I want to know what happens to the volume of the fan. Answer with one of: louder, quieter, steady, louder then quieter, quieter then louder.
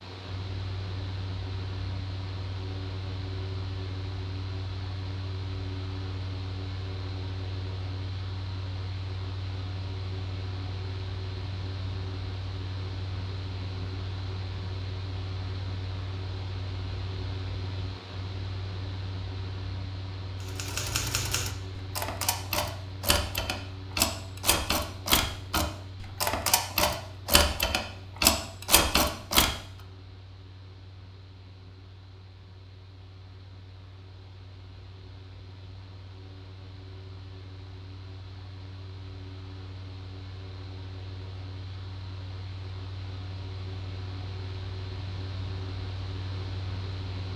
quieter then louder.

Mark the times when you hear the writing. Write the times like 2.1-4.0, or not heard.
not heard.